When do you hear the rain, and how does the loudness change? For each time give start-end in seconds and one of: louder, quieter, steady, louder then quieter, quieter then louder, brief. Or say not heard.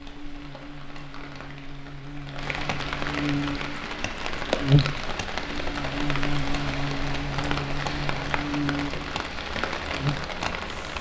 0.0-10.9 louder.